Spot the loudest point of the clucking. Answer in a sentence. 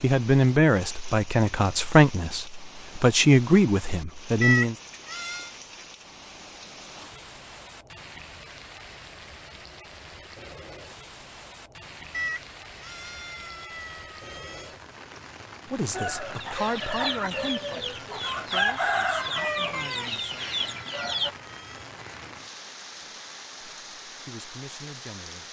The volume of the clucking peaks at 19 seconds.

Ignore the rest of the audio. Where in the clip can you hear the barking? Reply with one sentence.
You can't hear the barking here.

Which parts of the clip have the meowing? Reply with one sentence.
You can hear the meowing from 4.4 to 5.5 s, from 12.1 to 14.7 s and from 19.4 to 21.9 s.